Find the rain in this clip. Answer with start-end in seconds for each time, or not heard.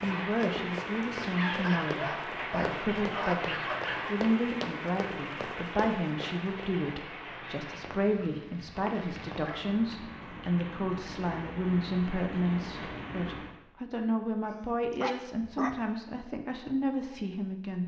0.0-13.6.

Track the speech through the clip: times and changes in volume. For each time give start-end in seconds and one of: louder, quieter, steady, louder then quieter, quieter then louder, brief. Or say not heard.
0.0-17.8 steady.